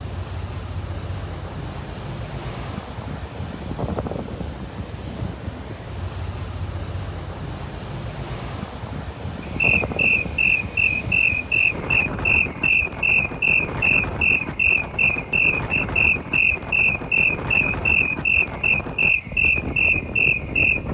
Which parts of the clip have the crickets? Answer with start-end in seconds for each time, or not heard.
9.4-20.8.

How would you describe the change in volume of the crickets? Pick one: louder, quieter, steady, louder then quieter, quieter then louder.
steady.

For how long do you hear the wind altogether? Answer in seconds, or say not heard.
21 s.